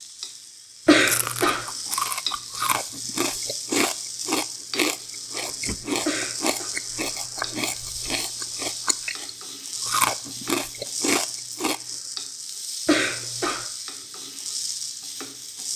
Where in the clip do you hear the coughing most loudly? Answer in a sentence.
The volume of the coughing peaks at 1 second.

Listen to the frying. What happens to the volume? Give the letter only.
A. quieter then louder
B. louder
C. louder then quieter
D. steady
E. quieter
D.